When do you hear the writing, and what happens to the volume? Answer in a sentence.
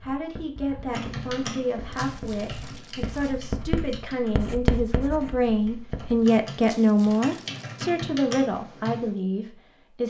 You can hear the writing from 0.0 to 6.2 s, getting louder then quieter.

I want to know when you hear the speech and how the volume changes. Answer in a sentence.
You can hear the speech from 0.0 to 10.0 s, getting louder then quieter.